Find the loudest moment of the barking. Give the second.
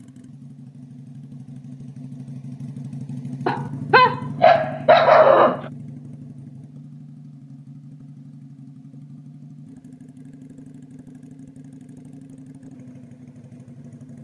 5 s.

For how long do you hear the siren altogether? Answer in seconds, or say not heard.
not heard.